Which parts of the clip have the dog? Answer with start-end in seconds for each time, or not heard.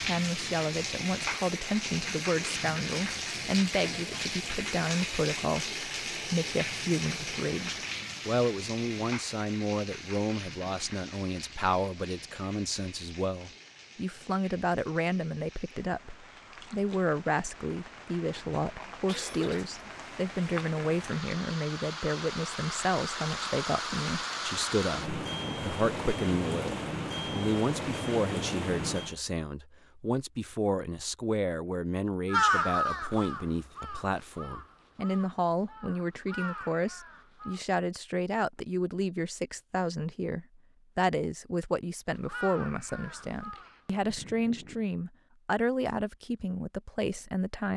not heard.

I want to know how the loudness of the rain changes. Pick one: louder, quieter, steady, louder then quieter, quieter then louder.
quieter then louder.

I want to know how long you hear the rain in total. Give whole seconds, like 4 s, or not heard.
29 s.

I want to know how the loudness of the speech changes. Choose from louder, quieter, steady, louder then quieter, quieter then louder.
steady.